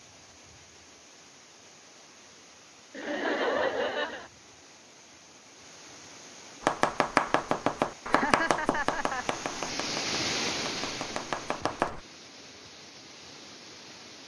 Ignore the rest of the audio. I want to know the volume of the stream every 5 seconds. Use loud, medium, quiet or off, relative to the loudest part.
quiet, medium, loud.